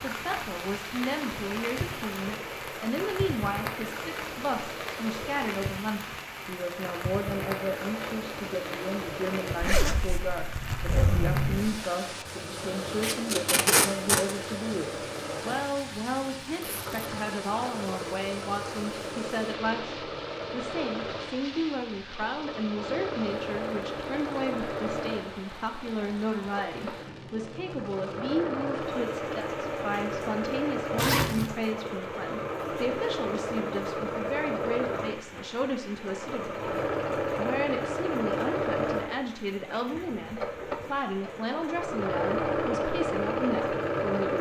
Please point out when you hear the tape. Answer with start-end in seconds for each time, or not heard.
13.0-14.3.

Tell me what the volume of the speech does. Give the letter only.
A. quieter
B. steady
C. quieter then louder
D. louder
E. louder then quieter
B.